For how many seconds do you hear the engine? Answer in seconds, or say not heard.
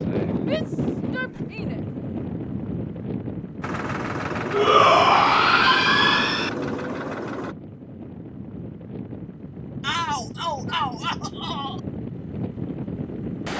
4 s.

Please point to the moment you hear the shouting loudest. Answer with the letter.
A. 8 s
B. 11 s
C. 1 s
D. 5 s
D.